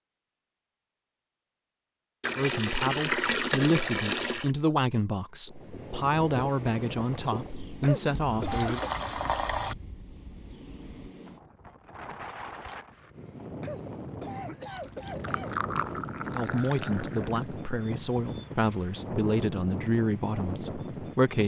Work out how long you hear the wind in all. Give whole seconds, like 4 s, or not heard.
16 s.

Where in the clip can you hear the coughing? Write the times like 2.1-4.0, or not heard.
7.8-8.9, 13.6-15.6.